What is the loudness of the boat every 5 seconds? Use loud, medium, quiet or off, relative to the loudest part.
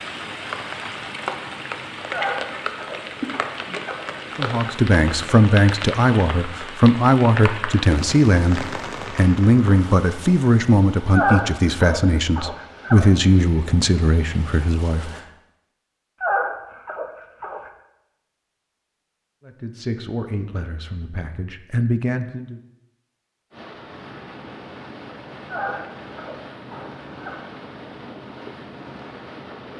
medium, off, off, off, loud, loud.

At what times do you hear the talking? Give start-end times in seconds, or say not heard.
4.3-15.1, 19.4-22.6.